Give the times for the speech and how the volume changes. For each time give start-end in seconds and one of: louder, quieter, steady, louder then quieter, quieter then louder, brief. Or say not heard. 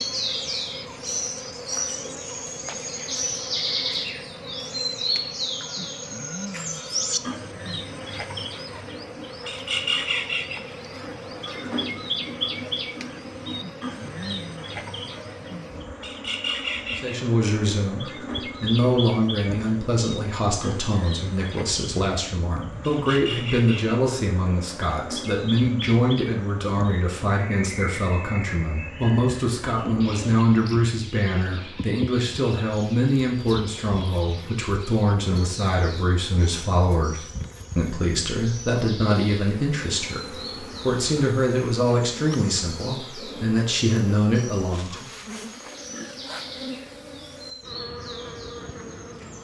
16.9-45.1 steady.